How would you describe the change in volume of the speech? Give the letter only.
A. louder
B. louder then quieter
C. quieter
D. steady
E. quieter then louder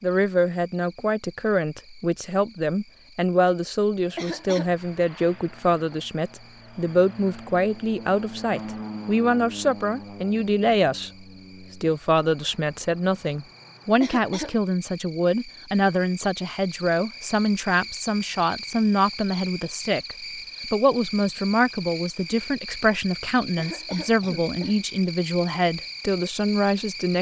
D.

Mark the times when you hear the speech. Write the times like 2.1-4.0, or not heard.
0.0-11.1, 11.8-27.1.